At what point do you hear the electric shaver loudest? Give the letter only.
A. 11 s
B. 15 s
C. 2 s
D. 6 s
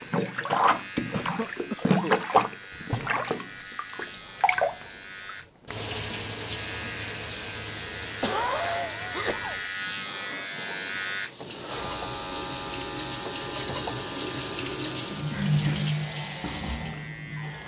A.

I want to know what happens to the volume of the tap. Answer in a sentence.
The loudness of the tap goes down, then up.